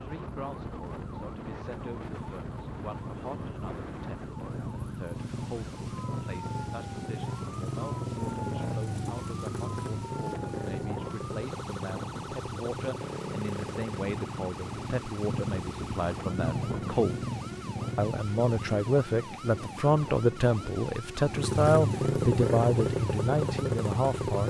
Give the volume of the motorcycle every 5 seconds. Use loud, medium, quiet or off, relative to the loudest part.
quiet, medium, medium, medium, loud.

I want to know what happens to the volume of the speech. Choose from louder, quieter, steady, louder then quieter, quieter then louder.
louder.